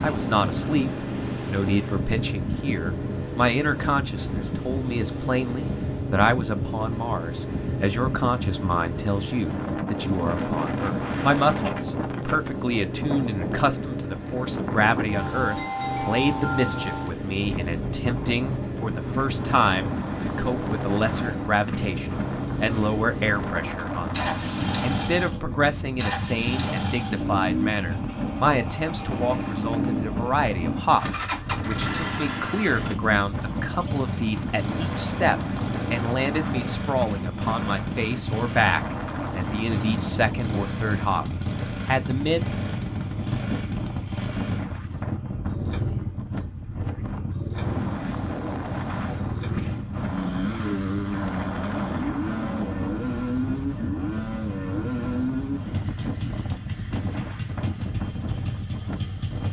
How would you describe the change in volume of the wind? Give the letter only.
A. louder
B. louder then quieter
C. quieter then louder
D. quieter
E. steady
E.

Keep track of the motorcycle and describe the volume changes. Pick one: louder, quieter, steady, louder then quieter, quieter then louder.
steady.